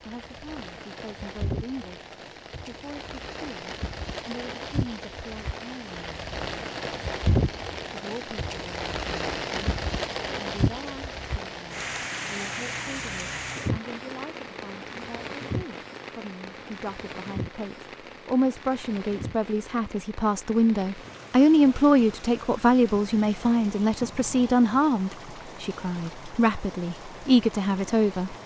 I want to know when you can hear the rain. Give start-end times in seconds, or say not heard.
0.0-28.4.